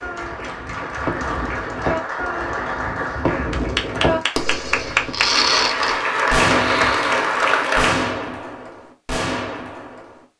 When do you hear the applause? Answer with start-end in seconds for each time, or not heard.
0.0-8.1.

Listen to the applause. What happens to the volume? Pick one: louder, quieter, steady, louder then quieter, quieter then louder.
louder.